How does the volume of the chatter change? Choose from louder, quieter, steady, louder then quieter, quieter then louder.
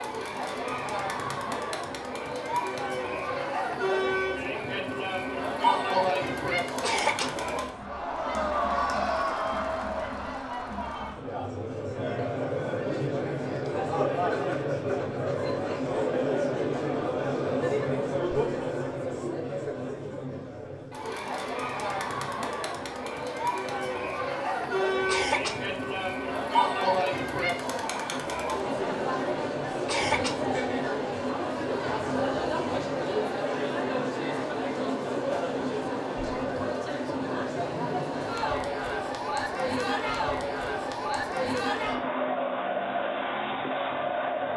steady.